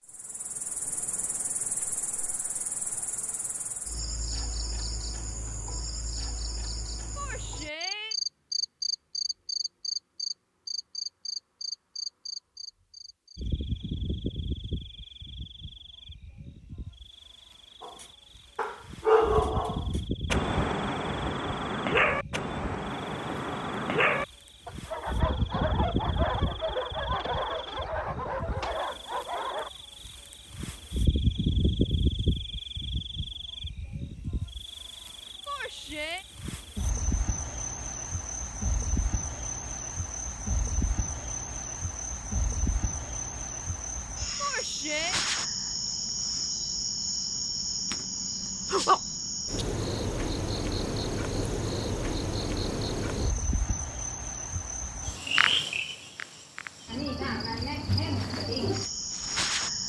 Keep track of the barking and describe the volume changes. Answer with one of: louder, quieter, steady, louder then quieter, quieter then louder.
quieter.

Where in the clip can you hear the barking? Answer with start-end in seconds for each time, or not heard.
17.8-29.7.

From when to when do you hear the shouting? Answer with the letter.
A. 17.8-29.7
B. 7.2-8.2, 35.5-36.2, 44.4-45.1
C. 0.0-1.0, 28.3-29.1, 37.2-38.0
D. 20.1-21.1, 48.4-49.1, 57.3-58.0
B.